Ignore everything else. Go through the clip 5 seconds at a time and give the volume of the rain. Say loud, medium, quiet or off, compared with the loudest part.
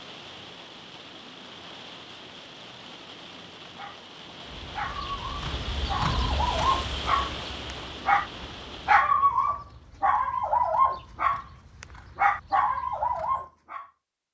medium, loud, off.